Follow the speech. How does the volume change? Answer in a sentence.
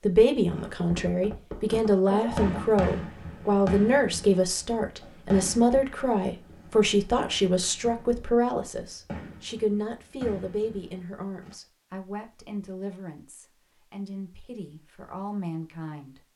The loudness of the speech goes down.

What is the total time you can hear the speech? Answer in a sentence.
The speech can be heard for 16 seconds in total.